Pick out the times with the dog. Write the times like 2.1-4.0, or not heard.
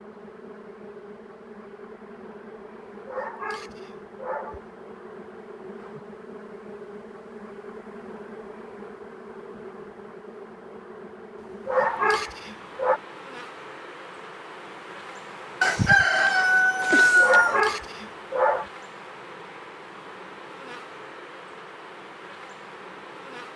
3.0-4.7, 11.4-13.0, 17.1-18.6.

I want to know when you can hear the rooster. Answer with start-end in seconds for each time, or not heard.
15.6-17.6.